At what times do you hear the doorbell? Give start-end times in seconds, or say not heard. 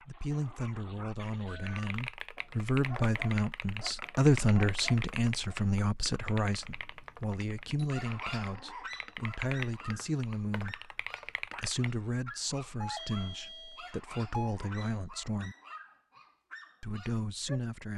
1.2-1.9, 6.5-8.0, 12.8-14.6.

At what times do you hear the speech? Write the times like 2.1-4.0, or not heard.
0.1-15.6, 16.8-17.9.